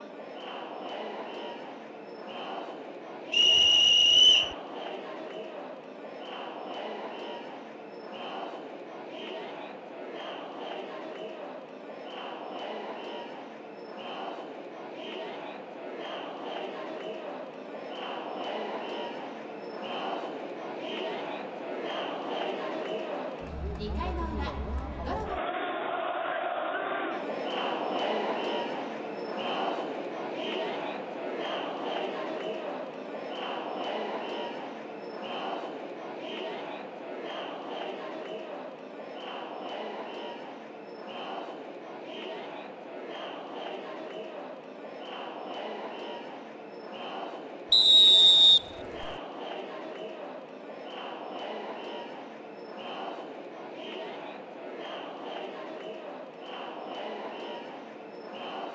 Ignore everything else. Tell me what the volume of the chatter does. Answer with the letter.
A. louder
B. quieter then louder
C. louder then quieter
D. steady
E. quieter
C.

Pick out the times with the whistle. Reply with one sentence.
You can hear the whistle from 3.3 to 4.5 s and from 47.7 to 49.1 s.